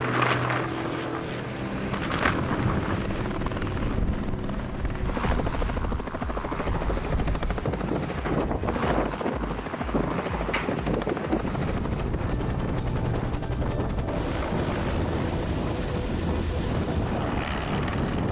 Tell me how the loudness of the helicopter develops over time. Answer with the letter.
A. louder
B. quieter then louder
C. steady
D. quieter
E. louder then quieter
C.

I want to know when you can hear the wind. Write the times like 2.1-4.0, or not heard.
0.0-18.2.